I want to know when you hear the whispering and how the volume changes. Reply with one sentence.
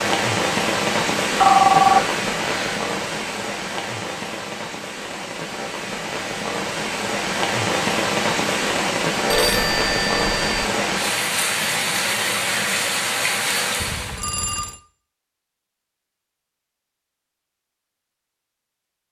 You can't hear the whispering here.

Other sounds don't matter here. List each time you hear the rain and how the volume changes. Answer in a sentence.
The rain can be heard from 0.0 to 14.2 s, getting quieter then louder.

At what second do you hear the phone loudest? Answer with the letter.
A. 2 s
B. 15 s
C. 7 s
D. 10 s
A.